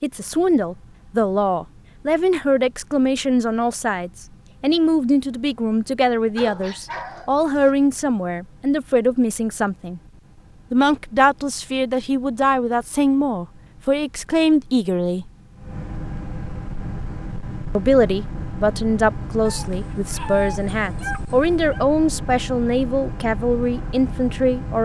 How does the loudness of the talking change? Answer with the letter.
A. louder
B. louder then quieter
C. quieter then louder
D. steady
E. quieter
D.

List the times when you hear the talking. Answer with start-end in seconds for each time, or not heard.
0.0-10.0, 10.7-15.3, 17.8-24.8.